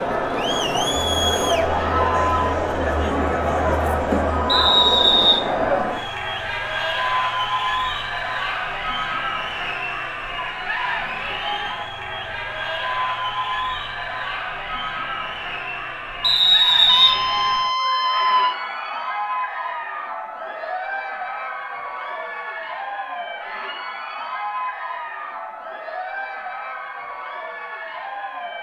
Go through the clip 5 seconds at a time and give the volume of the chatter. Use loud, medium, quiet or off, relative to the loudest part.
loud, loud, medium, medium, medium, medium.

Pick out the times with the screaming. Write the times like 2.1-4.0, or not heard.
1.8-2.6, 16.9-18.6.